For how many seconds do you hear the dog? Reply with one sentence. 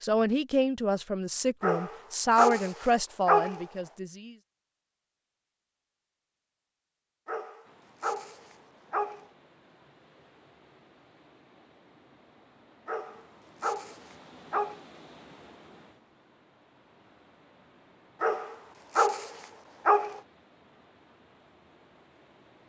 You can hear the dog for 8 seconds altogether.